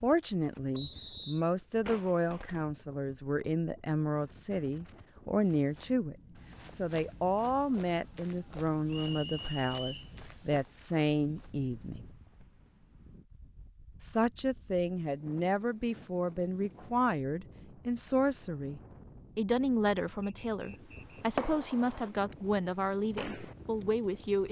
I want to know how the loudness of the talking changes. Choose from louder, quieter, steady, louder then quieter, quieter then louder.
steady.